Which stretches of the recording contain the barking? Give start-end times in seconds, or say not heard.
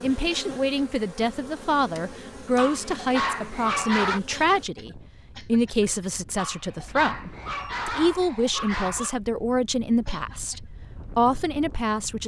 2.5-4.2, 6.3-9.2.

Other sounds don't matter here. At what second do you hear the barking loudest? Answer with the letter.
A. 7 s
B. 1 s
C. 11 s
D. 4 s
D.